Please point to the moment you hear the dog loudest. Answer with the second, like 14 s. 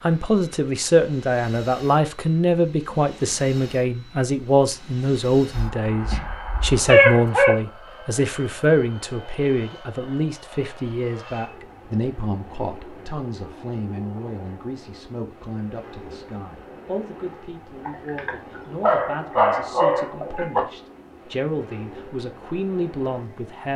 7 s.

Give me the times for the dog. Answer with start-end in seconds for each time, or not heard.
5.5-7.5, 17.9-20.6.